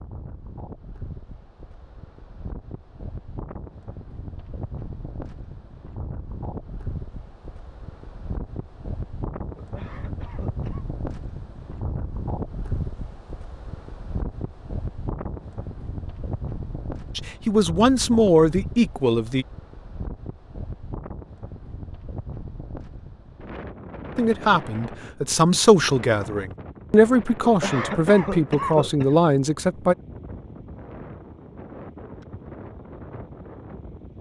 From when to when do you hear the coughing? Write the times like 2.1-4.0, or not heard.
9.6-10.8, 27.4-29.4.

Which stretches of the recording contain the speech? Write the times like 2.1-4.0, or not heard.
17.1-19.4, 24.1-29.9.